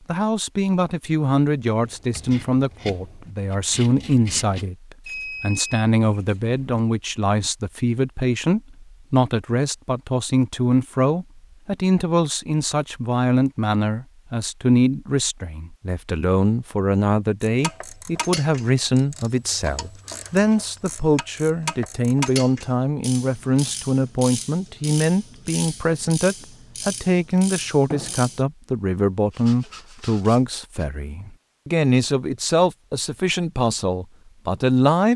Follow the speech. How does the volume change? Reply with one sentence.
The volume of the speech stays about the same.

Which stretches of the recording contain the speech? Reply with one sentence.
You can hear the speech from 0.1 to 35.1 s.